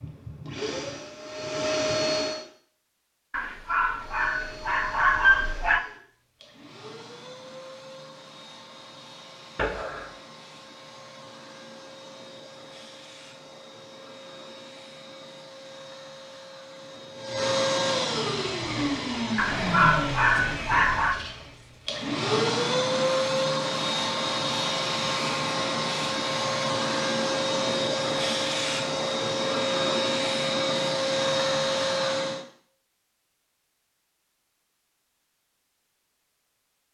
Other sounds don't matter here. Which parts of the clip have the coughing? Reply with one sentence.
You can hear the coughing from 9.6 to 10.1 s.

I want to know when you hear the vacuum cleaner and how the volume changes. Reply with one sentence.
You can hear the vacuum cleaner briefly from 0.0 to 2.5 s; and from 4.0 to 32.5 s, getting louder.